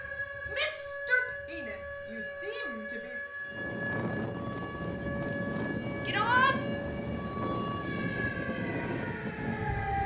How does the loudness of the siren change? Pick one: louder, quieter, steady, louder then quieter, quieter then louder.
steady.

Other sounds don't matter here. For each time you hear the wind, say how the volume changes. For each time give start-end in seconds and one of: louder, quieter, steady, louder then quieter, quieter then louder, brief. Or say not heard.
3.4-10.0 steady.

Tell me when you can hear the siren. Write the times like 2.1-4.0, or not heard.
0.0-10.0.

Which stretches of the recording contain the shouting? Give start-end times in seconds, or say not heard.
0.5-3.1, 6.0-6.5.